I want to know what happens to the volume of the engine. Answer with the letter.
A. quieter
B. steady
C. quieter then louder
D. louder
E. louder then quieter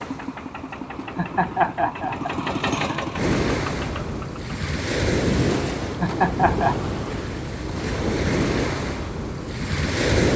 E.